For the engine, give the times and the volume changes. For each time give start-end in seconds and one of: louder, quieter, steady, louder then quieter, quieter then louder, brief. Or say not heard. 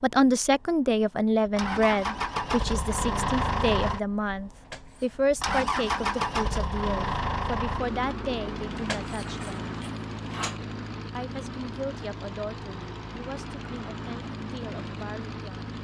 0.2-15.8 quieter.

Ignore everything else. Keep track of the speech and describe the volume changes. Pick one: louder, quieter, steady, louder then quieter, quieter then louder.
quieter.